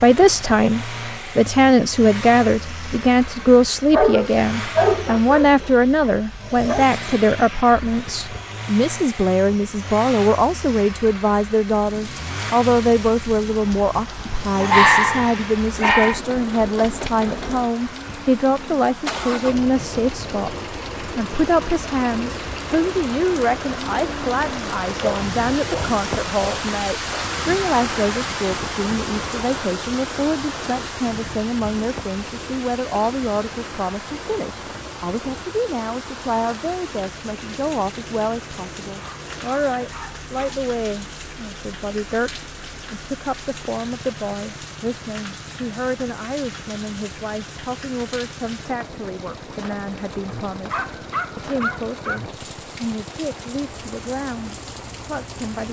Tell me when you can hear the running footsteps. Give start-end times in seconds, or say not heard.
not heard.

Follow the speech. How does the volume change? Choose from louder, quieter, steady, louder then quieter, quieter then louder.
quieter.